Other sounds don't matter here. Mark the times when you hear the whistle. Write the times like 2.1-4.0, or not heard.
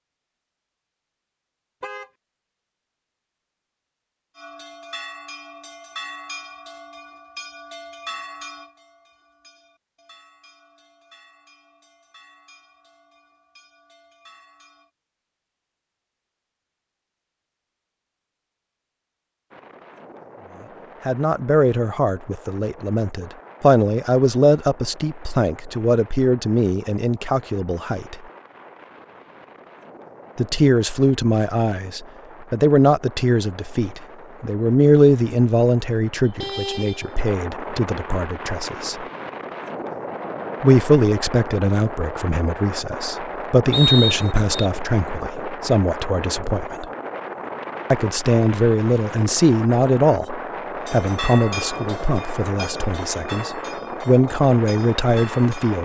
43.7-44.7.